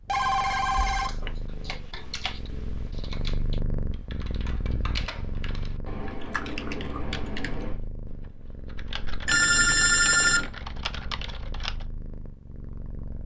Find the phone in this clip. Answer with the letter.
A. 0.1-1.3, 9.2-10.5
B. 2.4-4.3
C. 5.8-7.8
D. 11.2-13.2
A.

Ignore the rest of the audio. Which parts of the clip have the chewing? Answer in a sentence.
The chewing can be heard from 5.8 to 7.8 s.